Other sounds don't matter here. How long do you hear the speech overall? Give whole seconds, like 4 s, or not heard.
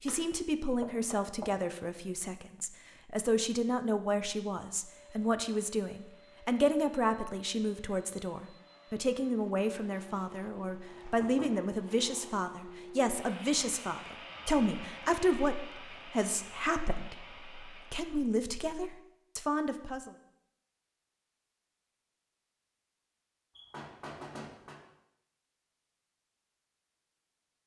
20 s.